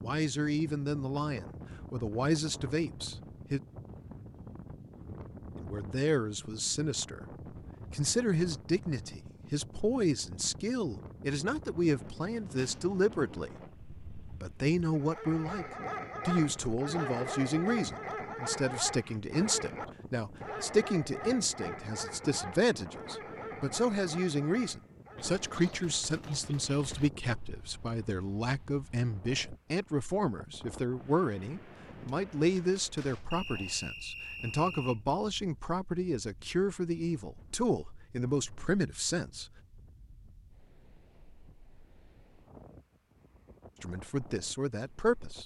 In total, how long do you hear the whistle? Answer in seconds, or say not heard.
2 s.